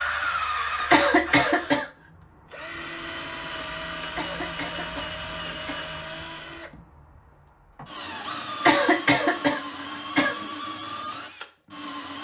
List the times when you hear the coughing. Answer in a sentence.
You can hear the coughing from 0.9 to 1.9 s, from 4.2 to 5.8 s and from 8.7 to 10.4 s.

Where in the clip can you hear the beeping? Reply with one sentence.
You can't hear the beeping here.